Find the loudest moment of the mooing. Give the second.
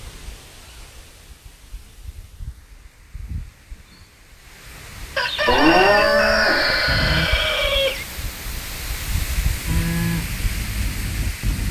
6 s.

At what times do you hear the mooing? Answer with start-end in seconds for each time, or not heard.
5.5-7.3, 9.7-11.6.